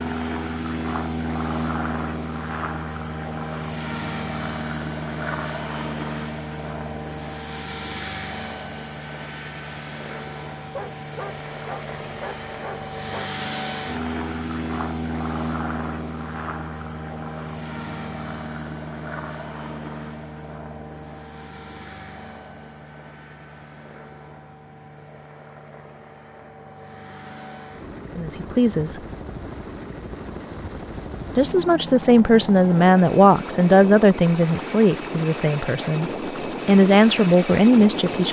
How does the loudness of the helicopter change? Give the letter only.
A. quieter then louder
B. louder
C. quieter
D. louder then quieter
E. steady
A.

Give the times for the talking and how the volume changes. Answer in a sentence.
The talking can be heard briefly from 28.1 to 28.9 s; and from 31.4 to 38.2 s, getting quieter then louder.